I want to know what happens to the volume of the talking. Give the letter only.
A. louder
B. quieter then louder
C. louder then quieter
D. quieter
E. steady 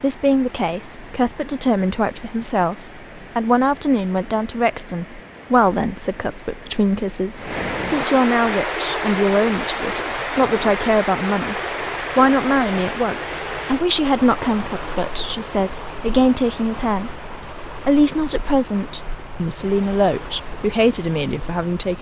E.